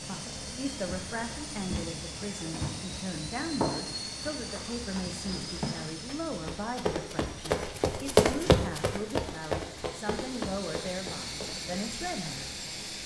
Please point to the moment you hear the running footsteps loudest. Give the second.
8 s.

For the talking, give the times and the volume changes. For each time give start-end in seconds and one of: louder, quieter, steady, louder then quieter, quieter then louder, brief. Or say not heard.
0.0-12.4 steady.